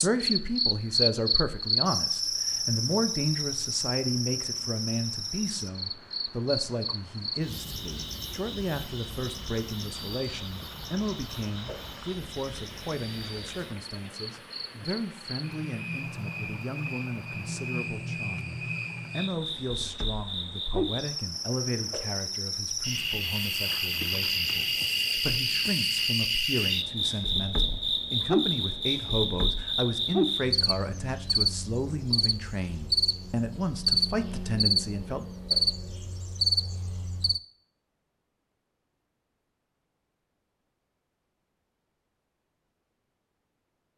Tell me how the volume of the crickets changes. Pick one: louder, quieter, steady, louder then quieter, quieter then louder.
quieter then louder.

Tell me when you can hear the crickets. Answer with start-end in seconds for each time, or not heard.
0.0-37.4.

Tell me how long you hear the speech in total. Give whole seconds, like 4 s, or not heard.
35 s.